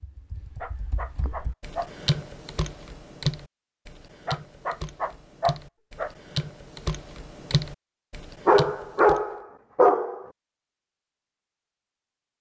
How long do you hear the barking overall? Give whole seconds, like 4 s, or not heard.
5 s.